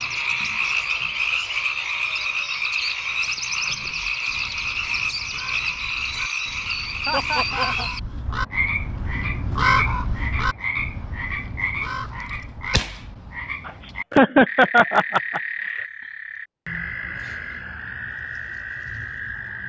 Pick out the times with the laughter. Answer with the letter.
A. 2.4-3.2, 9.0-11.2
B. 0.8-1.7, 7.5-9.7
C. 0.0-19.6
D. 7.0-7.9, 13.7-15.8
D.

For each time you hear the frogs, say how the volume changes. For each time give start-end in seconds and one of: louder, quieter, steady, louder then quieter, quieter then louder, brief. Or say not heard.
0.0-19.6 quieter.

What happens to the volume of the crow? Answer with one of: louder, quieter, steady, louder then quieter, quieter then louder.
louder then quieter.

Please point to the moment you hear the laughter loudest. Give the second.
14 s.